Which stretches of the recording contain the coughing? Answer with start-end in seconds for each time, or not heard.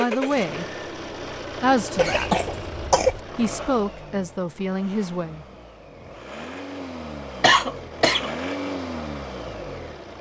1.9-3.2, 7.4-8.3.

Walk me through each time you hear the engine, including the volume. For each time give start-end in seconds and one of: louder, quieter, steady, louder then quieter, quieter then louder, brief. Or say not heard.
0.0-10.1 quieter then louder.